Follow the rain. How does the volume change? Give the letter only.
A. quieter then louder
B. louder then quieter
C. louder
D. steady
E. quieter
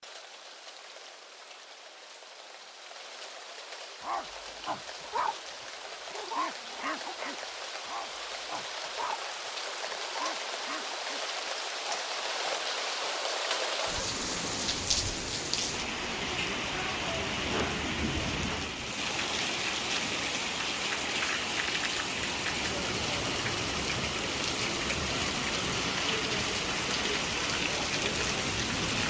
C.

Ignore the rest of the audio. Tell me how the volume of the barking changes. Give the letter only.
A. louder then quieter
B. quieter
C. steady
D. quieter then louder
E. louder
B.